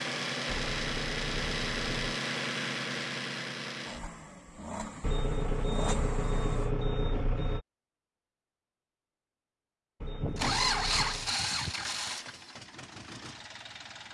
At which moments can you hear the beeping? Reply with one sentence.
You can hear the beeping from 0.6 to 2.1 s, from 5.0 to 7.7 s and from 10.0 to 11.3 s.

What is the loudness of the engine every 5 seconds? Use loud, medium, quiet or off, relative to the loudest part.
loud, medium, loud.